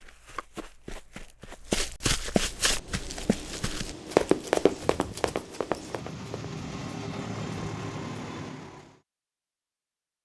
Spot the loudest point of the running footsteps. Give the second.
4 s.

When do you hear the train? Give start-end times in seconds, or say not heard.
2.4-9.0.